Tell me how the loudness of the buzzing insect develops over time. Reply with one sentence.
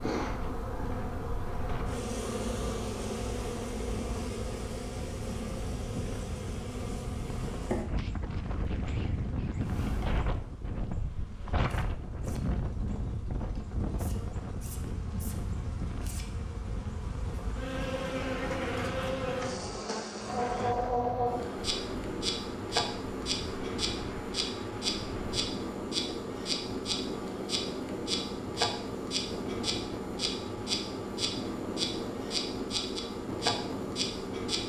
The loudness of the buzzing insect goes down, then up.